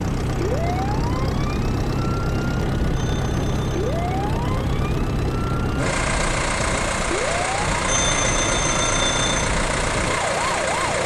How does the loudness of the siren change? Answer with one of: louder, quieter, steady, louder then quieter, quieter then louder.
steady.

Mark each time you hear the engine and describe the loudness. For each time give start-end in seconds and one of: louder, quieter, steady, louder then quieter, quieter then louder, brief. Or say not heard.
0.0-11.0 steady.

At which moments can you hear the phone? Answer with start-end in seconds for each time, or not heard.
2.9-3.8, 7.8-9.4.